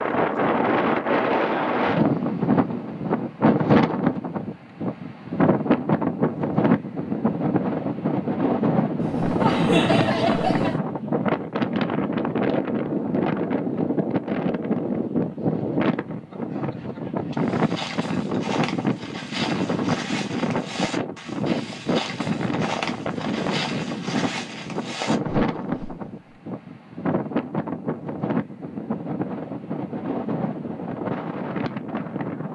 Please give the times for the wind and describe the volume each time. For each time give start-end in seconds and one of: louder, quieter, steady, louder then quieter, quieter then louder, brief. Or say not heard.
0.0-32.5 quieter.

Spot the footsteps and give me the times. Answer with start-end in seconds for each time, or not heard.
17.4-26.4.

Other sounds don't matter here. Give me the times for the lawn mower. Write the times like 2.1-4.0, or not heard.
not heard.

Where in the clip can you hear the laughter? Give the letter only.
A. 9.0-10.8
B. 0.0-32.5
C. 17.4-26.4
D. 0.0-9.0
A.